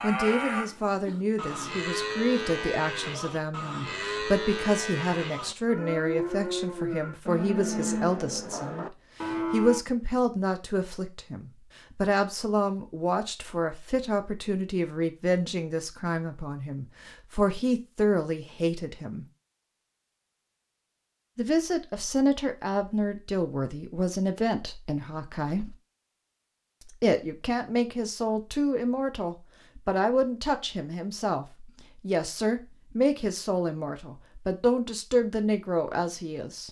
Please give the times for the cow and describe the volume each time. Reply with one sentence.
You can hear the cow from 0.0 to 9.8 s, at a steady volume.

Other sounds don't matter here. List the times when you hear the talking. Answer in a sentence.
The talking can be heard from 0.0 to 19.2 s, from 21.4 to 25.8 s and from 26.9 to 36.6 s.